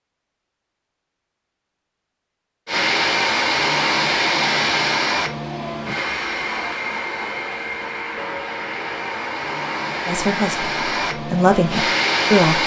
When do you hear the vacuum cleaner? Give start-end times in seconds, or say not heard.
2.6-12.6.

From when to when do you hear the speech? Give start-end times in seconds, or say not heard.
10.1-12.6.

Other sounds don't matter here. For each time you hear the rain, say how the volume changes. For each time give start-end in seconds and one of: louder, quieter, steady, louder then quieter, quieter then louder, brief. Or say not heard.
not heard.